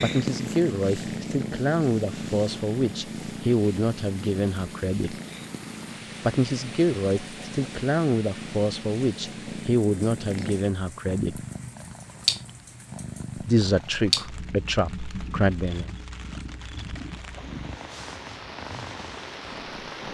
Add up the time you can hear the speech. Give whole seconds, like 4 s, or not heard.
13 s.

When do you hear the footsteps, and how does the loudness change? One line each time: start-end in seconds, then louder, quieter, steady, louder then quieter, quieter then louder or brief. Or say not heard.
not heard.